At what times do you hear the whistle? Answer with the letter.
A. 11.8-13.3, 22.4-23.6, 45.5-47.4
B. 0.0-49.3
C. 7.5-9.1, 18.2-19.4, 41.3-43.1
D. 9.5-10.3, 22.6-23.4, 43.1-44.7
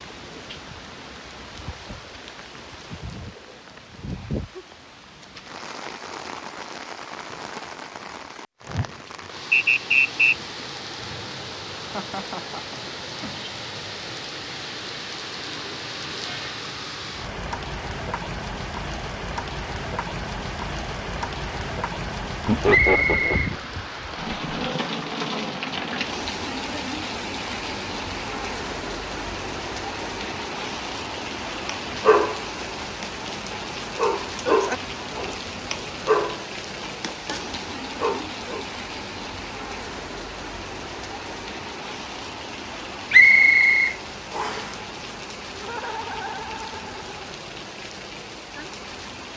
D.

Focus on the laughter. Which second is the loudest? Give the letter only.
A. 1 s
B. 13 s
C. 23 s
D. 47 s
C.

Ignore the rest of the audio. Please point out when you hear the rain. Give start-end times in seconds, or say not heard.
0.0-49.3.